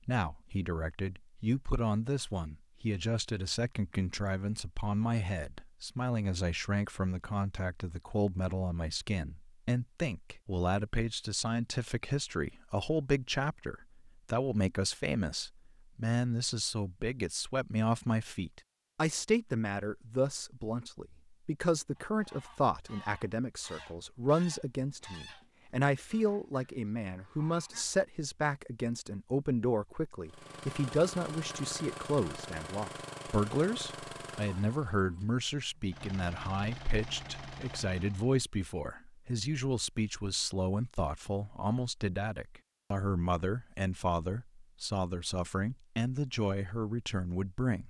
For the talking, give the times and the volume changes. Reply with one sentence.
You can hear the talking from 0.1 to 47.8 s, at a steady volume.